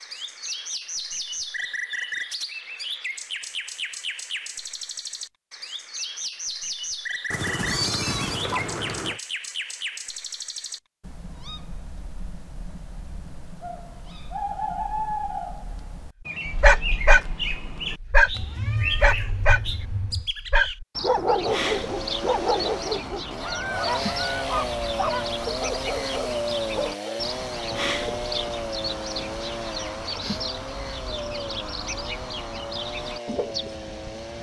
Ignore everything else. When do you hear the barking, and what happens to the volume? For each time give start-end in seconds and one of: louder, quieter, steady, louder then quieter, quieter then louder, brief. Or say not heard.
16.4-27.1 quieter.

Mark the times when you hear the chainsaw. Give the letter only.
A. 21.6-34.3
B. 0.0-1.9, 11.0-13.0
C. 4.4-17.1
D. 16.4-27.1
A.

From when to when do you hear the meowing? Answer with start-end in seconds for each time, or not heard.
7.3-9.2, 18.3-20.3.